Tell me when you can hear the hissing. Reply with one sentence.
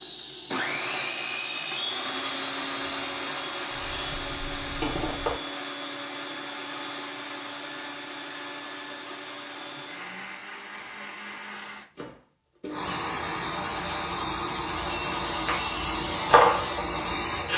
You can hear the hissing from 0.0 to 5.4 s and from 12.7 to 17.5 s.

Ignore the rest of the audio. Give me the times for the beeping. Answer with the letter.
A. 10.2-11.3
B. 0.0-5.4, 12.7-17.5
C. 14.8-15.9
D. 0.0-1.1
C.